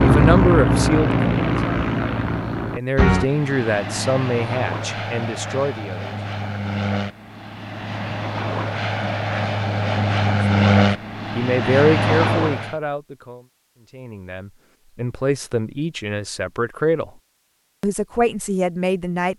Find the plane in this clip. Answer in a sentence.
You can hear the plane from 0.0 to 12.8 s.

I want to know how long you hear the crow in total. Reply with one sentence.
The crow can't be heard in this clip.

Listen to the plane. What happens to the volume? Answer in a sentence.
The loudness of the plane goes down, then up.